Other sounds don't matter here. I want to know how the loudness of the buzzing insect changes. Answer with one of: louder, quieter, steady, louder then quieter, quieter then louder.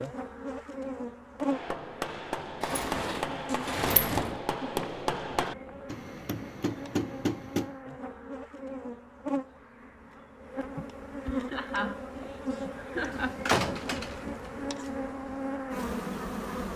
quieter then louder.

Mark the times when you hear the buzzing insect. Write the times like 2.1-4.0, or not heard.
0.0-16.7.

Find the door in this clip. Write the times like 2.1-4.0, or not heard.
2.6-4.4, 13.1-14.9.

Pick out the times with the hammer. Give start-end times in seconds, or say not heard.
1.4-7.8.